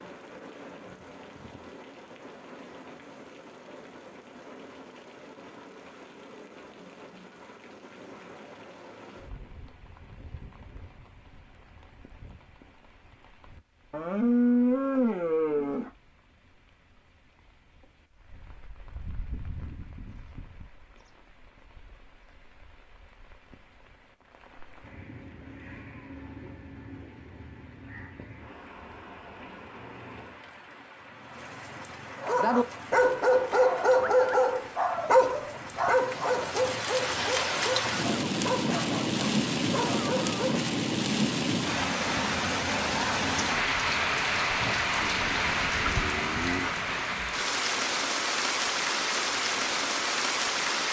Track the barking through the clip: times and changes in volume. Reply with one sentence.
You can hear the barking from 32.2 to 40.6 s, getting quieter.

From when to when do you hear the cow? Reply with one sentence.
You can hear the cow from 13.9 to 15.9 s and from 45.0 to 46.7 s.